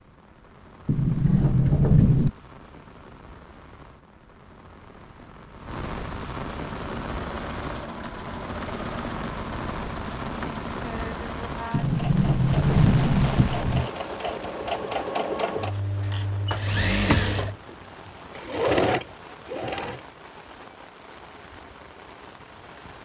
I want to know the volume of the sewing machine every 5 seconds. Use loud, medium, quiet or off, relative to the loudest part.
off, medium, medium, loud, off.